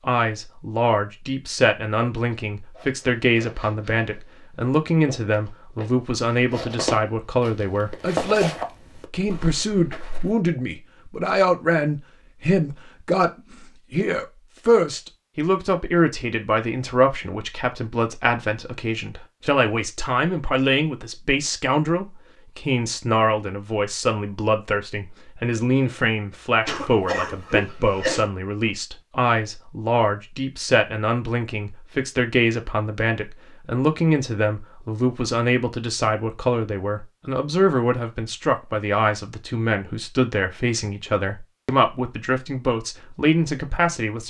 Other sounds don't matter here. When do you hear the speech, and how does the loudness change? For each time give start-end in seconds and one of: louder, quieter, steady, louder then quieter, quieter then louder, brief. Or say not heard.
0.1-44.2 steady.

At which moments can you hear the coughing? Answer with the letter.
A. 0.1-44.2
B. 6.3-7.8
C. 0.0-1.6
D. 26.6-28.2
D.